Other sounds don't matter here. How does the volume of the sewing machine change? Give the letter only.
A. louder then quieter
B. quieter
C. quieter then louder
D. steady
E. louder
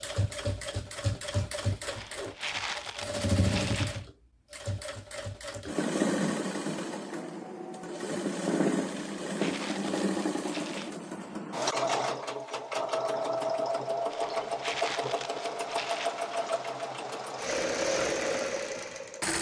D.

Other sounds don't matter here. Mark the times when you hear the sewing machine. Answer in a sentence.
You can hear the sewing machine from 0.0 to 19.3 s.